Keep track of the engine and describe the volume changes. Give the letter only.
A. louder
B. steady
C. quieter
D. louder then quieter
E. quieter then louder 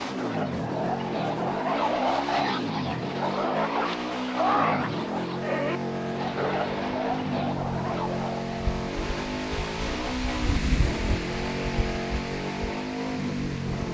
B.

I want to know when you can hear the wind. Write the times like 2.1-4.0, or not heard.
5.9-13.8.